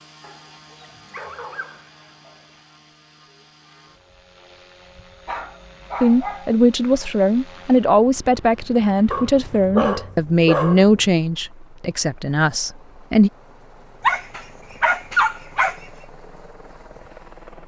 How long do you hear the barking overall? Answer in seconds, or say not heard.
7 s.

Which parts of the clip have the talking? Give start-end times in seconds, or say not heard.
6.0-13.3.